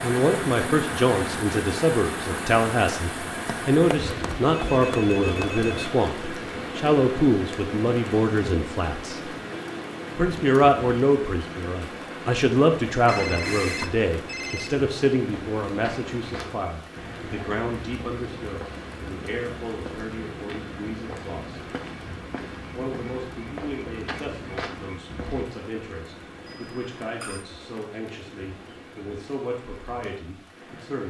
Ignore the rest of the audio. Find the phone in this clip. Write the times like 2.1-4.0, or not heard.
3.5-5.9, 13.1-14.7, 26.4-27.4.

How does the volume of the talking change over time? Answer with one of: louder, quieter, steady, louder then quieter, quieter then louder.
quieter.